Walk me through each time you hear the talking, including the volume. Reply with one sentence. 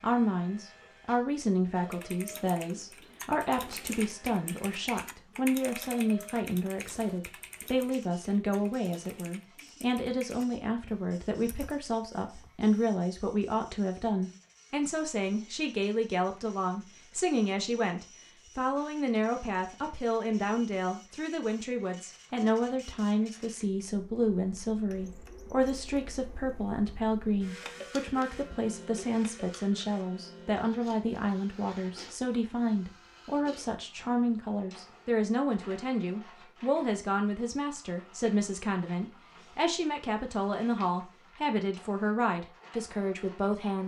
You can hear the talking from 0.0 to 43.8 s, at a steady volume.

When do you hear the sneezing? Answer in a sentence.
You can't hear the sneezing here.